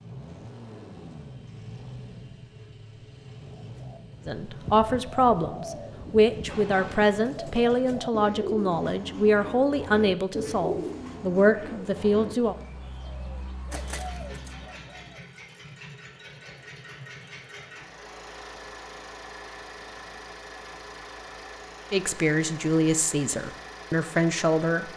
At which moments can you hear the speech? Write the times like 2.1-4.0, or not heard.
4.2-12.6, 21.9-24.9.